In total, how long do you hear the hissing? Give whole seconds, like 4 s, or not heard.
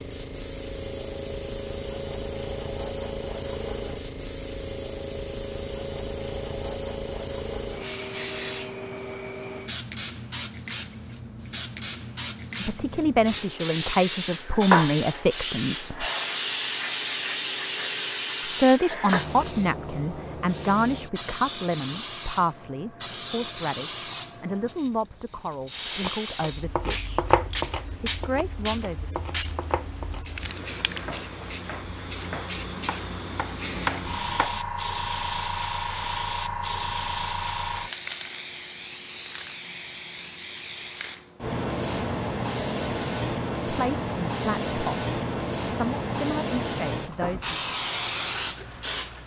49 s.